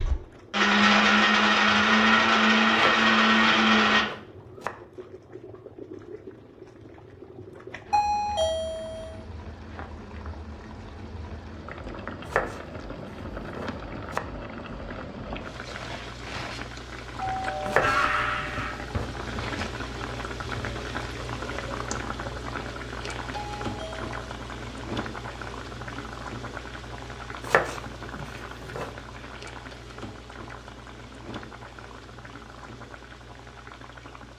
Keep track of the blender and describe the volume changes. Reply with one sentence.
The loudness of the blender stays about the same.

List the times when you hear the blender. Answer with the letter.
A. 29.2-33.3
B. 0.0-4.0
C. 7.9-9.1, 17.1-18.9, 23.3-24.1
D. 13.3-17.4
B.